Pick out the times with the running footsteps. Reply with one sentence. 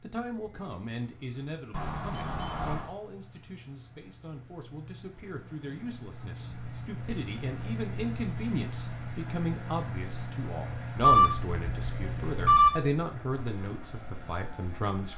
The running footsteps can't be heard in this clip.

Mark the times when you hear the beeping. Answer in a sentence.
You can hear the beeping from 1.7 to 2.9 s and from 11.0 to 12.8 s.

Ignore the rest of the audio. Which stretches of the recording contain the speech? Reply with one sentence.
You can hear the speech from 0.0 to 15.1 s.